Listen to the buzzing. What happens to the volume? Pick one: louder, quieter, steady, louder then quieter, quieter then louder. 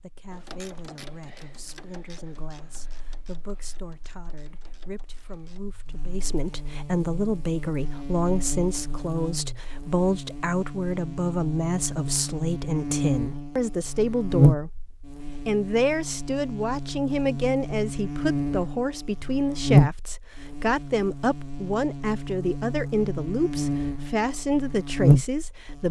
louder.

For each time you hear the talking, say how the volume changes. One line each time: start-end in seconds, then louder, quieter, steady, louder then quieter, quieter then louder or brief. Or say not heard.
0.0-25.8 louder.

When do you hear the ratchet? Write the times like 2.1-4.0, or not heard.
0.3-5.6.